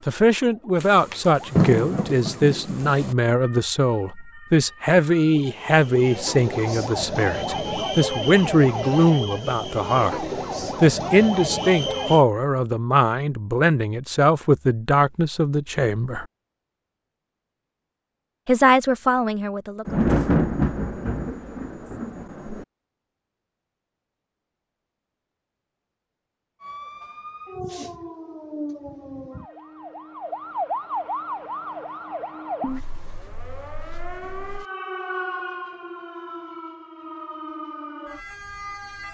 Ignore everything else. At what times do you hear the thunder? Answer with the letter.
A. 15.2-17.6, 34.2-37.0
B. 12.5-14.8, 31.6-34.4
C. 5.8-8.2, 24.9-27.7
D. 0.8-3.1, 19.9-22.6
D.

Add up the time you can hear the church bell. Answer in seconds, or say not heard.
not heard.